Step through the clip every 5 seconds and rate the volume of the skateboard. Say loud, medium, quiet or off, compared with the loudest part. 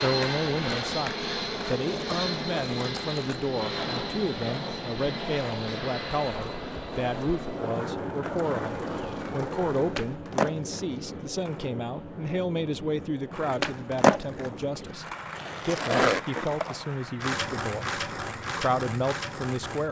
medium, medium, loud, loud.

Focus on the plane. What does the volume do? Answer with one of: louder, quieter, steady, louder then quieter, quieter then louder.
quieter.